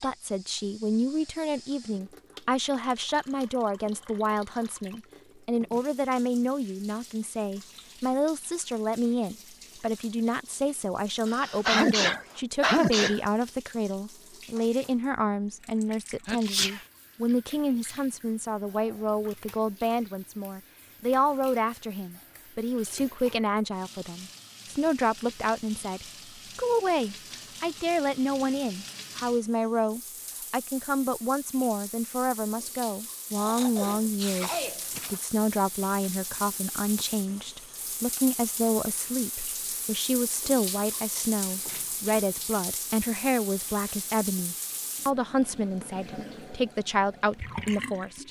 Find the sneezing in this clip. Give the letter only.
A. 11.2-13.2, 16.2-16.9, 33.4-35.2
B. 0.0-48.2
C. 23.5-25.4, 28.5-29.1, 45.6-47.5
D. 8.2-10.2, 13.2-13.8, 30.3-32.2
A.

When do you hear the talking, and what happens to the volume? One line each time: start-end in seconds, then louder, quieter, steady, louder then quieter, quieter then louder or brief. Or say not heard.
0.0-48.2 steady.